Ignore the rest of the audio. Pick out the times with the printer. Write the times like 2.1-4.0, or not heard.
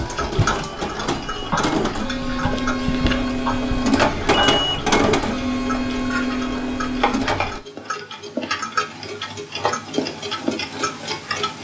0.0-7.6.